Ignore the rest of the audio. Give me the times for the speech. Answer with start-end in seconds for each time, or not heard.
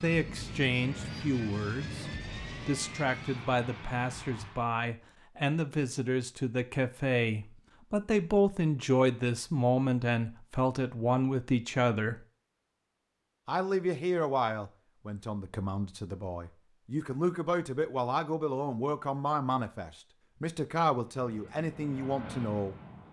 0.0-12.2, 13.4-22.8.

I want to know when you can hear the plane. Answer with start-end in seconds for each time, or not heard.
0.0-4.7, 21.0-23.0.